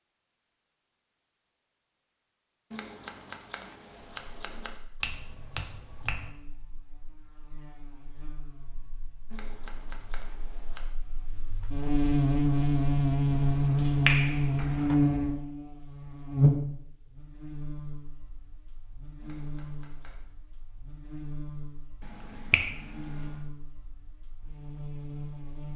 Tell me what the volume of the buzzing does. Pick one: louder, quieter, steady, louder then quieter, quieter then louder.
louder then quieter.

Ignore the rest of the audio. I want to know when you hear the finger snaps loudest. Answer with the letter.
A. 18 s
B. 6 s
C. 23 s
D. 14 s
D.